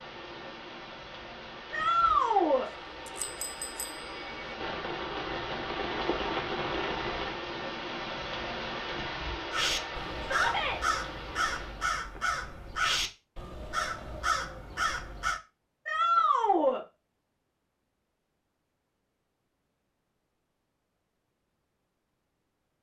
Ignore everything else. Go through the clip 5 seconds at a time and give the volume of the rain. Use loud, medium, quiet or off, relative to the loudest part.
medium, loud, medium, off, off.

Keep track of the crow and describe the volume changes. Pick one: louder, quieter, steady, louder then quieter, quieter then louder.
steady.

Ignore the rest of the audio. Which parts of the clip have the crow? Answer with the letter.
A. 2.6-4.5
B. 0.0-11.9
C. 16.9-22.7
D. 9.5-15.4
D.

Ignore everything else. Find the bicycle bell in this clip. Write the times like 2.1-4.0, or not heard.
2.6-4.5.